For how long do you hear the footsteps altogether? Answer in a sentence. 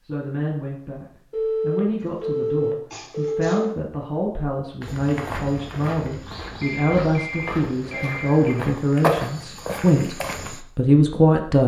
The footsteps can be heard for 6 seconds in total.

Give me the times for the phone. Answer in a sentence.
The phone can be heard from 1.3 to 3.5 s and from 6.6 to 8.6 s.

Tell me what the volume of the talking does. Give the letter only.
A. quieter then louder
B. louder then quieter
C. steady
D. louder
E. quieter
D.